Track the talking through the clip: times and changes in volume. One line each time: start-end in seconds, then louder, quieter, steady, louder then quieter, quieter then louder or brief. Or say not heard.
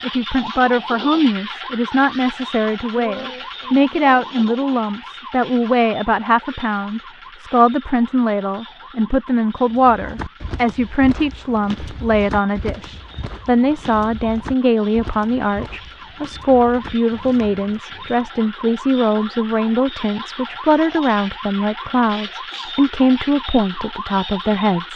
0.0-24.9 steady.